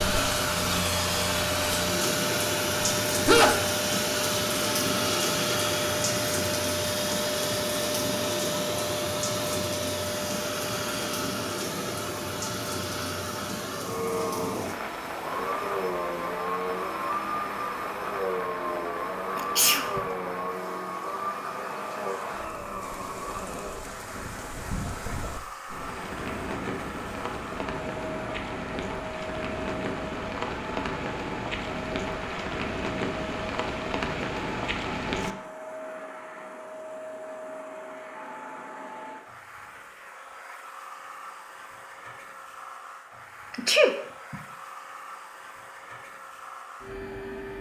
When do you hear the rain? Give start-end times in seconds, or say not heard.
0.0-35.4.